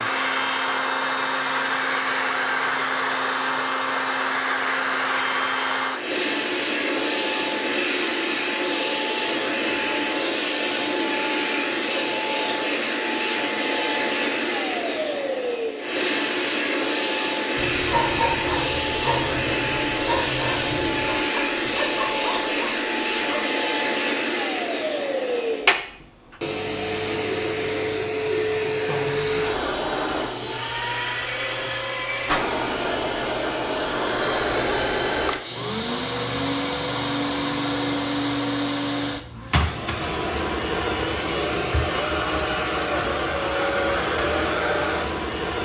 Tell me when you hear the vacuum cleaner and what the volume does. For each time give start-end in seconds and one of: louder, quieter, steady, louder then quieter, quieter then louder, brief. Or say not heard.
0.0-45.5 steady.